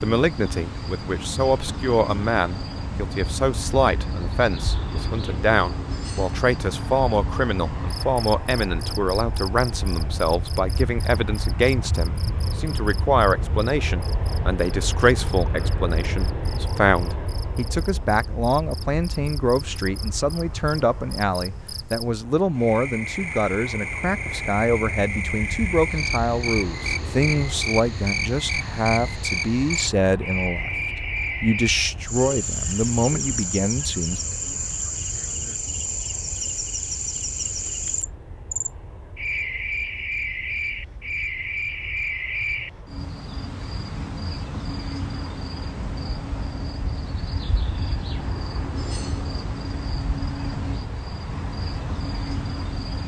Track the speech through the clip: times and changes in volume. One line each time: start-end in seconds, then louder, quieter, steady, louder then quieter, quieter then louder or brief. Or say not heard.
0.0-30.7 steady
31.4-34.2 brief.